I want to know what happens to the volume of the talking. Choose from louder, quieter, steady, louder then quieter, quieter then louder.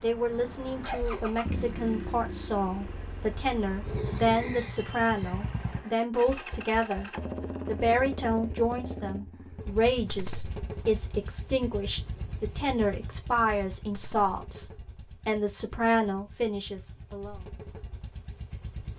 steady.